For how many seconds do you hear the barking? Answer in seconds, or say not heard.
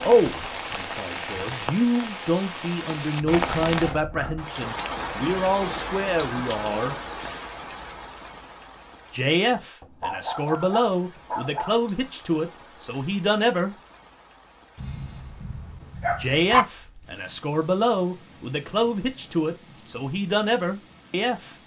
5 s.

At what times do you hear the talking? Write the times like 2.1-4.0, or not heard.
0.0-7.0, 9.1-13.8, 16.2-21.6.